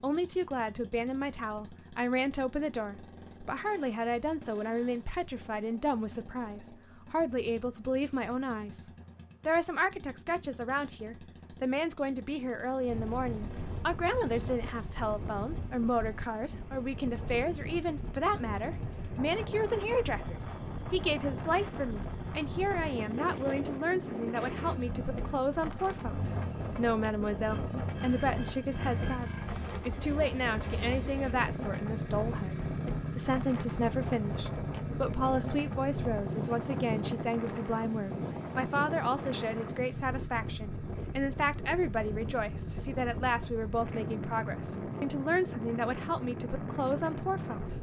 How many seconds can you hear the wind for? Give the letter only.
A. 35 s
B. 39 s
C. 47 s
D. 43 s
A.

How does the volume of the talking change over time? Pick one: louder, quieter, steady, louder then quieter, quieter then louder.
steady.